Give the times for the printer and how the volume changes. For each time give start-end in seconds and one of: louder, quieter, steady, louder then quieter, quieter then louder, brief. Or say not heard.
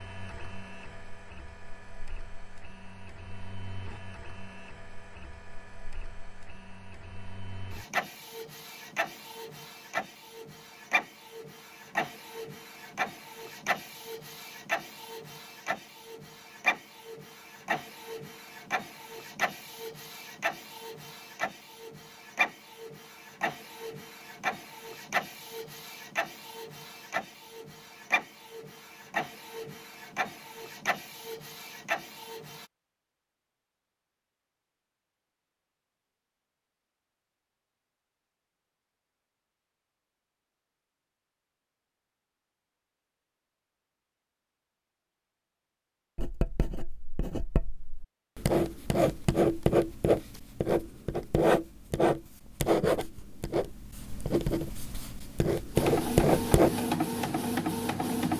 0.0-32.6 louder
55.8-58.3 brief.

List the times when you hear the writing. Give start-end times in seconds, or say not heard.
46.1-56.7.